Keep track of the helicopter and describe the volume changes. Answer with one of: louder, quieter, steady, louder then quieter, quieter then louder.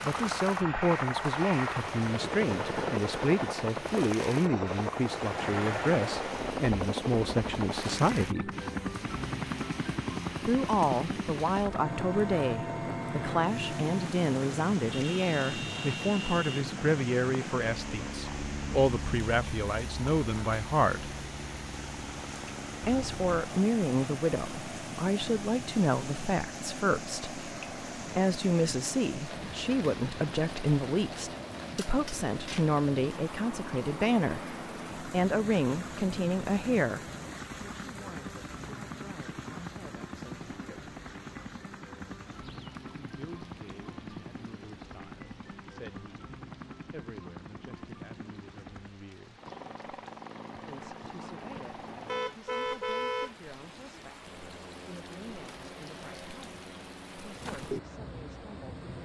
quieter.